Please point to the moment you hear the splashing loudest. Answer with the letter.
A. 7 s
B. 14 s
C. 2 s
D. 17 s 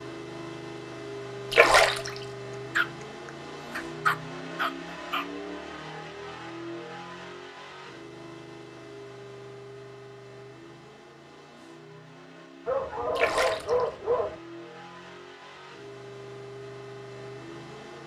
C.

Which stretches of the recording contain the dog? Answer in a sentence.
You can hear the dog from 2.8 to 5.2 s and from 12.7 to 14.4 s.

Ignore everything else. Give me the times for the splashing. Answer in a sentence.
You can hear the splashing from 1.5 to 2.2 s and from 13.2 to 13.8 s.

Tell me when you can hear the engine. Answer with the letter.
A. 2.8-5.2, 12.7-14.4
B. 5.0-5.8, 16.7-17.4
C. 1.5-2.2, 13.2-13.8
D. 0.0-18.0
D.